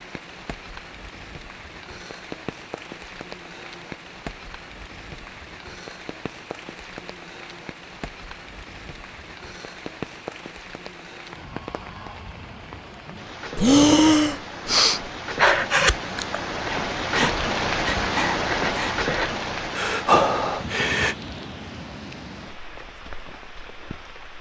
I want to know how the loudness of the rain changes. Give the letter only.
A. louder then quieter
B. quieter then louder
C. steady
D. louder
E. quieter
A.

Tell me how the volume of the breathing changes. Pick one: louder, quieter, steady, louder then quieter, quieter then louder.
quieter then louder.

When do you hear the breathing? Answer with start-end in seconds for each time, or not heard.
13.6-21.1.